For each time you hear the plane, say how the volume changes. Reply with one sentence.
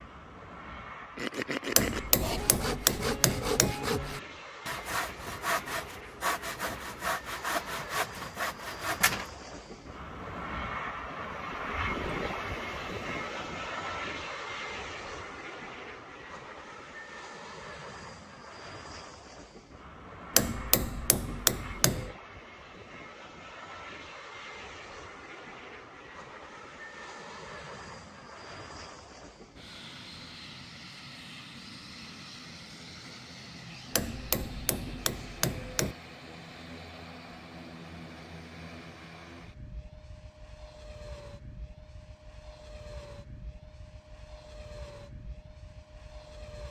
The plane can be heard from 0.0 to 46.6 s, getting louder then quieter.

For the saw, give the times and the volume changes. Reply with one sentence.
You can hear the saw from 1.1 to 9.4 s, at a steady volume.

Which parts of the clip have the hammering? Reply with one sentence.
You can hear the hammering from 1.8 to 3.8 s, from 20.4 to 22.1 s and from 33.9 to 36.0 s.